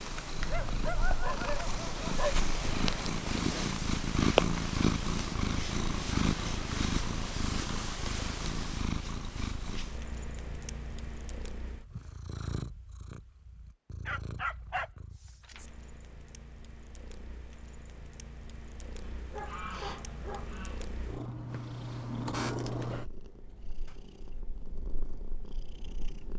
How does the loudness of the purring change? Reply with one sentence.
The loudness of the purring goes down, then up.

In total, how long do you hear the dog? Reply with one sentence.
The dog can be heard for 5 seconds in total.